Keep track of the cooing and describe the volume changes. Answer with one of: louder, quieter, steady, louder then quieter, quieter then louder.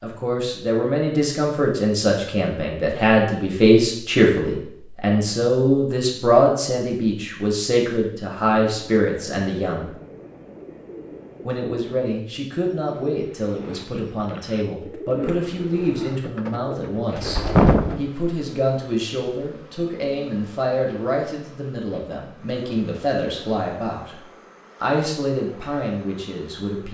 louder.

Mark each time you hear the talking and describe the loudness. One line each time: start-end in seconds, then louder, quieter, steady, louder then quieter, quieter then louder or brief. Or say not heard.
0.0-9.9 steady
11.4-24.1 steady
24.8-26.8 brief.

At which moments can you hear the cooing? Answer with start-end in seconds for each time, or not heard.
8.7-18.0.